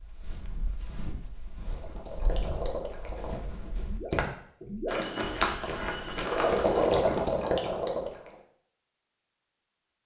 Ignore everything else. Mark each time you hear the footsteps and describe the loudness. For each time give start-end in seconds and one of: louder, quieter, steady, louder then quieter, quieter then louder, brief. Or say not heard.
0.0-6.9 louder.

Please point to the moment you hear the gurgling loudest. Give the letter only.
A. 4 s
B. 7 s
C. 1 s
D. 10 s
B.